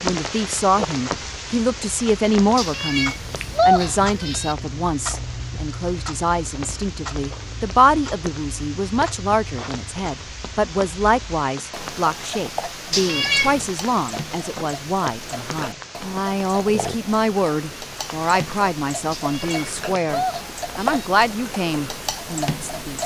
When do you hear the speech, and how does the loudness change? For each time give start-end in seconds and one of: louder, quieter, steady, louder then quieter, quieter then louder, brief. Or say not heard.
0.0-23.0 steady.